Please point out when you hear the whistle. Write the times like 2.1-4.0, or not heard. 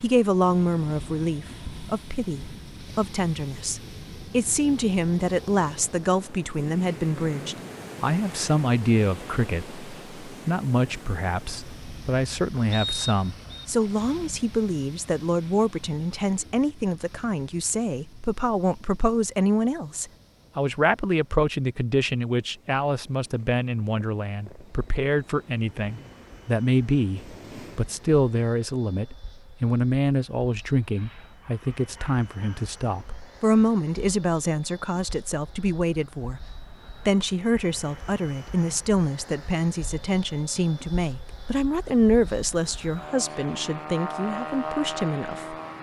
12.7-13.7.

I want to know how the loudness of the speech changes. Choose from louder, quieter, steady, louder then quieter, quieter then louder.
steady.